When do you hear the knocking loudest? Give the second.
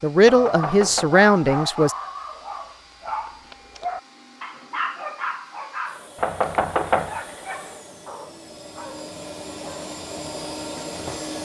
7 s.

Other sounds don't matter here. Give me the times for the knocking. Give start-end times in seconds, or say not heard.
0.2-1.1, 6.2-7.2.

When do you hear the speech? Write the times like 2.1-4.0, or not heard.
0.0-1.9.